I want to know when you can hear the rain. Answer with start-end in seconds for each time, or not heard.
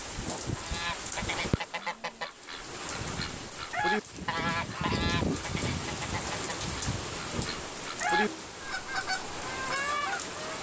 0.0-10.5.